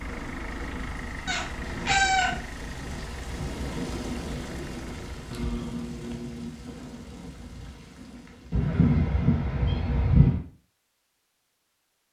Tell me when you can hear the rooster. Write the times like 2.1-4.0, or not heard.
not heard.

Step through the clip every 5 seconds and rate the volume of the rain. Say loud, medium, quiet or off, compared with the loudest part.
loud, medium, off.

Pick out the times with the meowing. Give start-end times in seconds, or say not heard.
1.2-2.4, 5.3-6.5, 8.5-10.4.